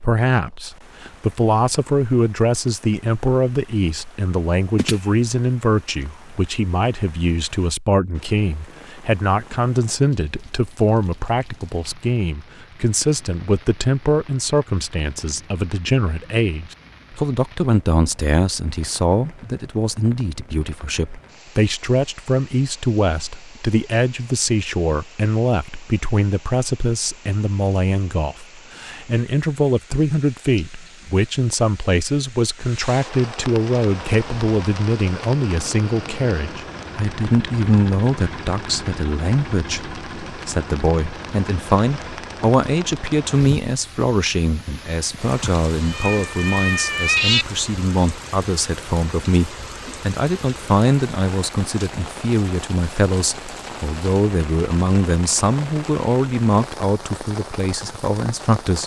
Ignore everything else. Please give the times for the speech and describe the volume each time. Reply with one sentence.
You can hear the speech from 0.0 to 58.8 s, at a steady volume.